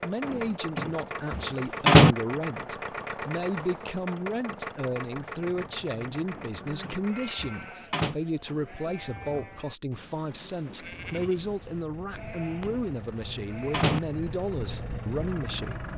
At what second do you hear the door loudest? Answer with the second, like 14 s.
2 s.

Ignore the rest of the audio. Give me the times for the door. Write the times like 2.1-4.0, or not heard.
0.2-2.1, 6.3-8.2, 12.2-14.0.